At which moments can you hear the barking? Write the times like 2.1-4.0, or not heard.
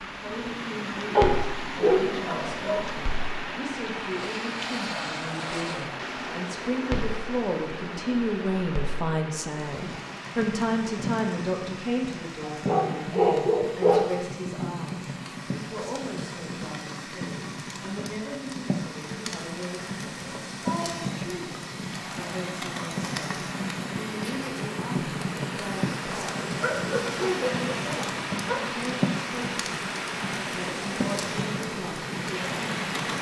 1.1-2.9, 12.5-14.1, 26.6-28.6.